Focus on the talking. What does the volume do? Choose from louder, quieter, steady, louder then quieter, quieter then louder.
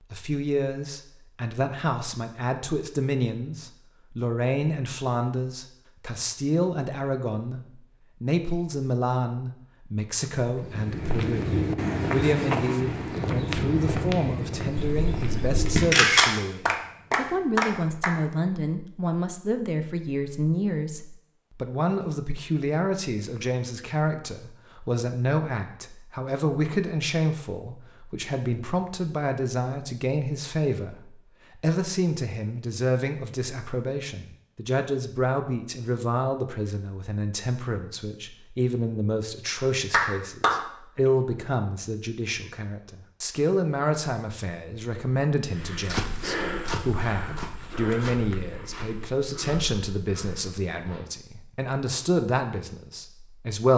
steady.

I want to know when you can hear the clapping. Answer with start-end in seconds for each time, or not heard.
16.1-18.1, 39.5-41.1.